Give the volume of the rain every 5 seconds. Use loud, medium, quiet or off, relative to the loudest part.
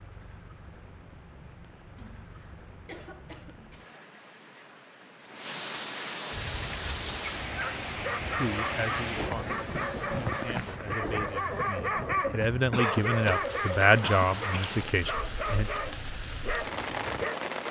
quiet, loud, loud, loud.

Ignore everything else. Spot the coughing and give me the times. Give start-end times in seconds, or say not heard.
1.9-4.0, 9.4-10.0, 12.7-14.8.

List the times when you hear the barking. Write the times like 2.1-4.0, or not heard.
6.3-17.4.